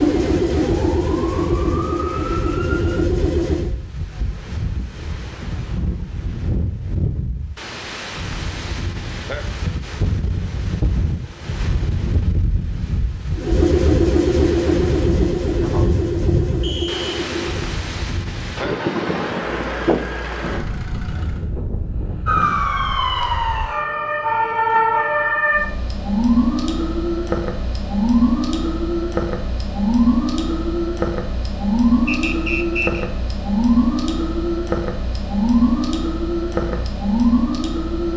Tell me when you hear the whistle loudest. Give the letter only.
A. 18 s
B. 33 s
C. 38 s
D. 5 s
B.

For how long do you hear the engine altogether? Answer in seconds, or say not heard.
12 s.